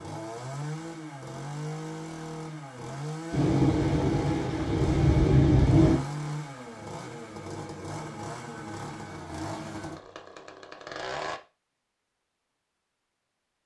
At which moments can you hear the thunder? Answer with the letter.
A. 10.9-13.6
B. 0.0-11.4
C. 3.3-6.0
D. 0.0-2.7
C.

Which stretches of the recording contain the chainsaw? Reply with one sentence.
The chainsaw can be heard from 0.0 to 11.4 s.